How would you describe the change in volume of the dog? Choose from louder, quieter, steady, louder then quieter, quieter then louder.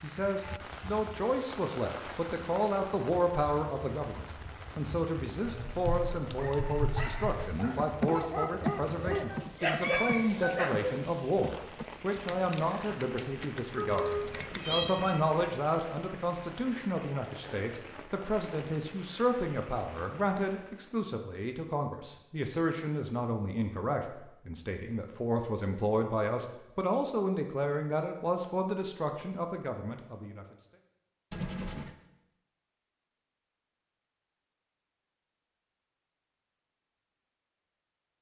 louder.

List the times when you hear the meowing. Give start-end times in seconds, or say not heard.
9.3-10.7, 13.8-15.3, 31.3-31.9.